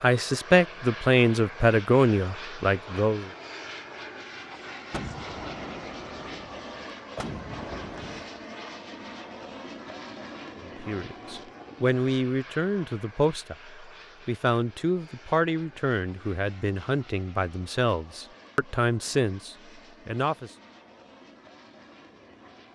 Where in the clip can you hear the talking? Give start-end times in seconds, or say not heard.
0.0-3.3, 10.6-20.5.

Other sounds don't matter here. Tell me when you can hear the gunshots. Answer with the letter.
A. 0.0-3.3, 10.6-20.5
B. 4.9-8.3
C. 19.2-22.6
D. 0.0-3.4
B.